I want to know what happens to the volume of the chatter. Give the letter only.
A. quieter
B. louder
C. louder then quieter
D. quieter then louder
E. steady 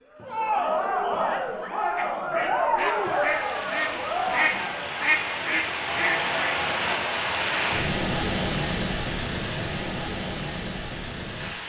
A.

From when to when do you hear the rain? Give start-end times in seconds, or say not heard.
2.9-11.6.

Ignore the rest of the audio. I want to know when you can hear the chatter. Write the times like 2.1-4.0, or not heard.
0.1-7.2.